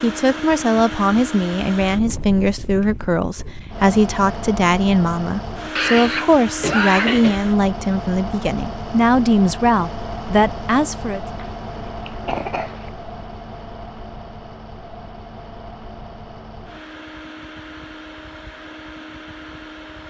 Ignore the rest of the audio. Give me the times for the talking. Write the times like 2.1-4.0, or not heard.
0.0-11.2.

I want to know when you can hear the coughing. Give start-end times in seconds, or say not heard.
5.8-7.4, 11.3-12.9.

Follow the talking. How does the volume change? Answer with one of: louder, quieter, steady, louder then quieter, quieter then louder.
steady.